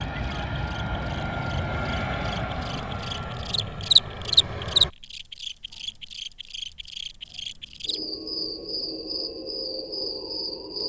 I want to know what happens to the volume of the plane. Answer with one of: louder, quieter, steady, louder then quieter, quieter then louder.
quieter.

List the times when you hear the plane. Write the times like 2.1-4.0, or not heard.
0.0-4.9.